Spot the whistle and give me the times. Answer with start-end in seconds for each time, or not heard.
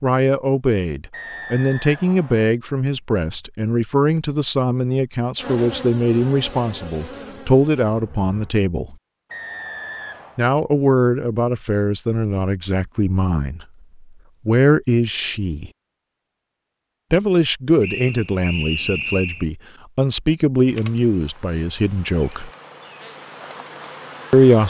1.1-2.5, 9.3-10.4, 17.8-19.4.